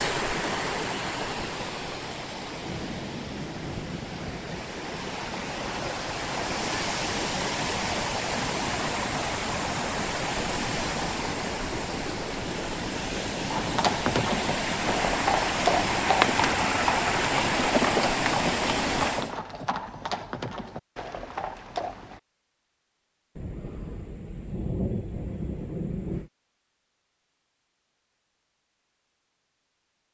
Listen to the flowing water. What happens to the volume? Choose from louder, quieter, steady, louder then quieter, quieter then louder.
louder.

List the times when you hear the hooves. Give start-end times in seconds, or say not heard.
13.5-22.2.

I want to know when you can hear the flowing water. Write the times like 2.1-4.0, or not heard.
0.0-19.4.